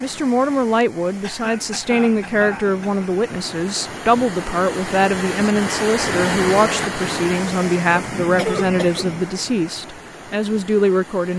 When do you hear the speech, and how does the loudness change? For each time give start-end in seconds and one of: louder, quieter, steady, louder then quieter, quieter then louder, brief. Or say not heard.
0.0-11.3 steady.